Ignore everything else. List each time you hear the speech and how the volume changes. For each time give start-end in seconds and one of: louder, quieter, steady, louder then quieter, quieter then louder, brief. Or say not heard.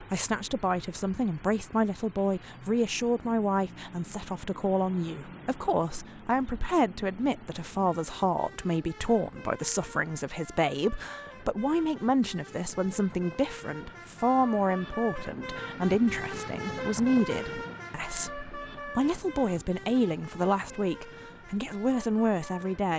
0.0-22.9 steady.